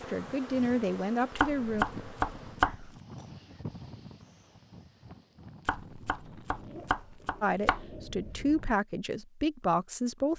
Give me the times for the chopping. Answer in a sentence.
The chopping can be heard from 1.4 to 2.9 s and from 5.7 to 7.8 s.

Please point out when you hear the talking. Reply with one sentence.
The talking can be heard from 0.0 to 1.9 s and from 7.4 to 10.3 s.